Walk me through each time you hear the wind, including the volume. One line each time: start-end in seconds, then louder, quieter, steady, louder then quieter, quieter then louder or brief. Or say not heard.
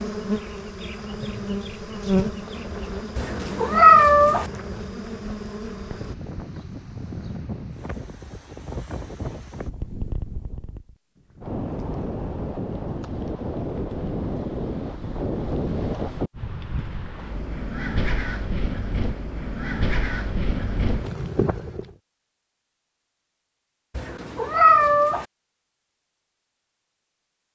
0.0-21.9 louder.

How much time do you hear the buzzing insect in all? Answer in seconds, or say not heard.
6 s.